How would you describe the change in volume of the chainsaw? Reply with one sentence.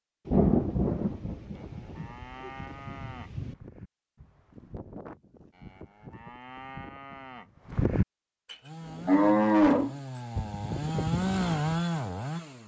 The loudness of the chainsaw goes up.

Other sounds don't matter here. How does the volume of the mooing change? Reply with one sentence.
The volume of the mooing goes up.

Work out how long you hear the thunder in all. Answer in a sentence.
You can hear the thunder for 3 seconds altogether.